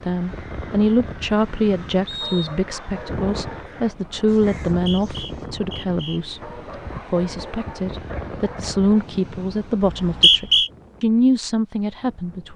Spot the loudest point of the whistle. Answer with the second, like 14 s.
10 s.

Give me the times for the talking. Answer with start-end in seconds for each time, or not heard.
0.0-6.5, 7.1-12.5.